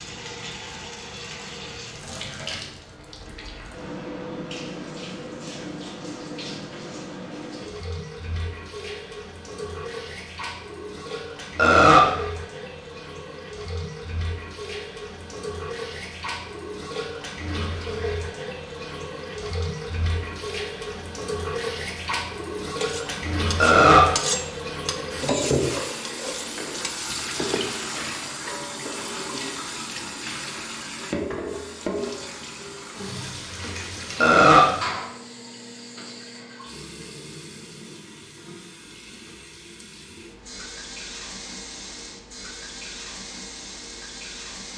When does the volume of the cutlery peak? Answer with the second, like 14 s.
24 s.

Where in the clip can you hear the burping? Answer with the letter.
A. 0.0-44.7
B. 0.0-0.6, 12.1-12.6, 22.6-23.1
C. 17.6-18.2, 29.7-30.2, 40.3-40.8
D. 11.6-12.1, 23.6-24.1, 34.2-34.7
D.